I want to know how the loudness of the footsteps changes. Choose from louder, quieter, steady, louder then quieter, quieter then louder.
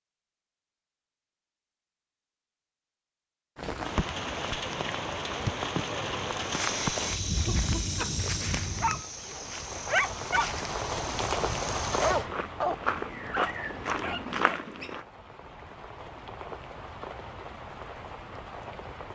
quieter then louder.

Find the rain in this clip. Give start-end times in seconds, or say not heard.
3.5-19.0.